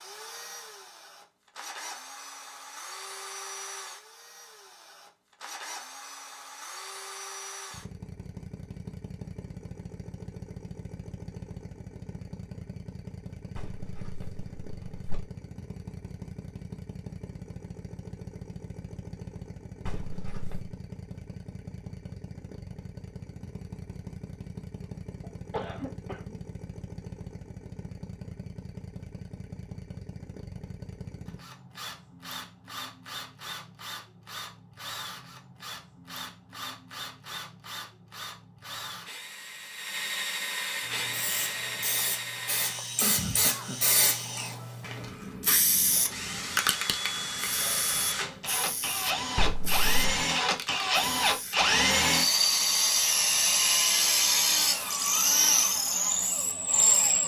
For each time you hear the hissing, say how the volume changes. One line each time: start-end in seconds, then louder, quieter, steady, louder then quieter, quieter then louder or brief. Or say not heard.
40.9-57.0 quieter.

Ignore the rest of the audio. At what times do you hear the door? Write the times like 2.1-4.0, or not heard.
13.6-15.2, 19.9-20.8, 49.4-50.1.